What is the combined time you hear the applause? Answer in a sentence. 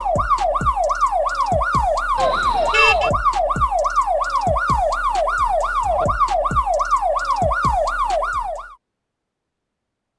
The applause can't be heard in this clip.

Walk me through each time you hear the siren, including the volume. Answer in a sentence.
The siren can be heard from 0.0 to 8.8 s, at a steady volume.